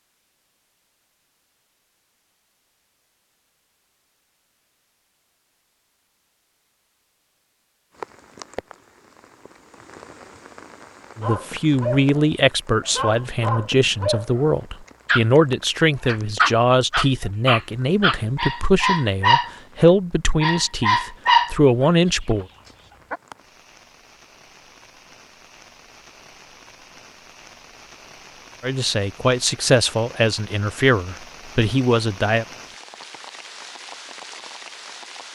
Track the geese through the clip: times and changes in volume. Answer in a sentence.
You can't hear the geese here.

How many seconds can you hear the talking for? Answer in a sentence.
You can hear the talking for 15 seconds altogether.